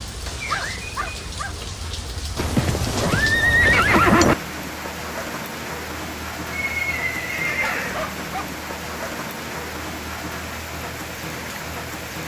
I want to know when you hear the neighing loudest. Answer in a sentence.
The loudest moment of the neighing is at 4 seconds.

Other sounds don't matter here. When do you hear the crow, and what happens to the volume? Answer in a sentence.
The crow can't be heard in this clip.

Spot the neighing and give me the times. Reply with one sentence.
The neighing can be heard from 2.4 to 4.3 s and from 6.5 to 8.1 s.